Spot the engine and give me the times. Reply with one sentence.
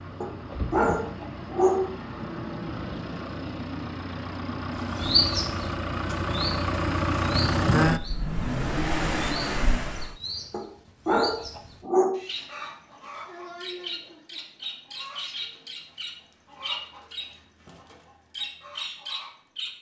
You can hear the engine from 0.0 to 10.2 s.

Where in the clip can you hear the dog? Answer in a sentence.
The dog can be heard from 0.2 to 1.9 s and from 10.5 to 12.2 s.